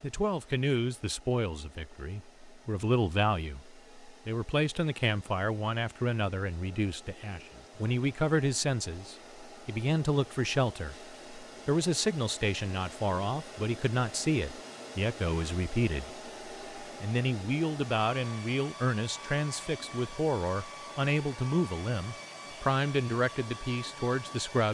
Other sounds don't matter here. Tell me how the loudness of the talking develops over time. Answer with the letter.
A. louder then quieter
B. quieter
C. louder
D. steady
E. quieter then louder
D.